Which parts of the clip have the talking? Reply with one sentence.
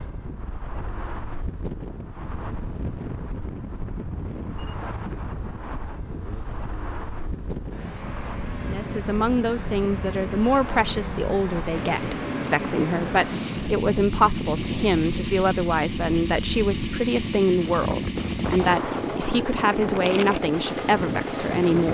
The talking can be heard from 8.7 to 21.9 s.